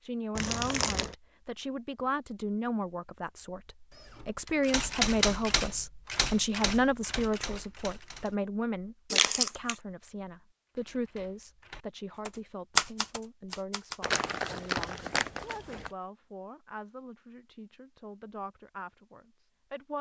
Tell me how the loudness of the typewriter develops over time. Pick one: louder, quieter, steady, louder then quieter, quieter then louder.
quieter then louder.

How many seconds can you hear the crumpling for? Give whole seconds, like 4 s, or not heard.
3 s.